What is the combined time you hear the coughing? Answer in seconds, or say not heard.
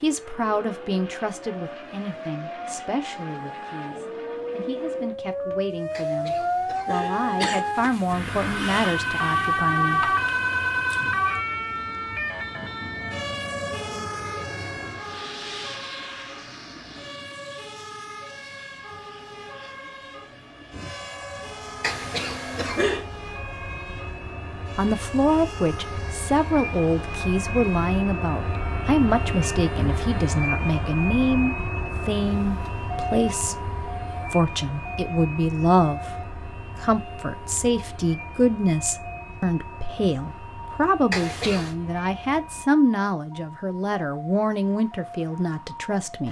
4 s.